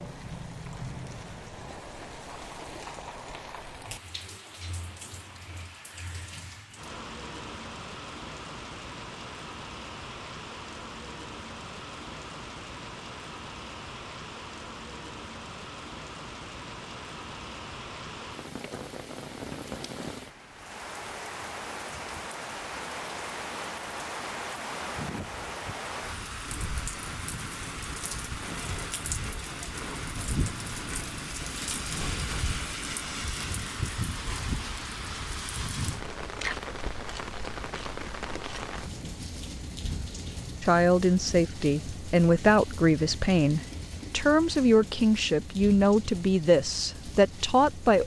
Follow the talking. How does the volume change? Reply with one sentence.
The loudness of the talking stays about the same.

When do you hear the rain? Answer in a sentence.
You can hear the rain from 0.0 to 48.0 s.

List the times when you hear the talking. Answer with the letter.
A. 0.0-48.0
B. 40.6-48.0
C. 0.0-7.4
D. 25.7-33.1
B.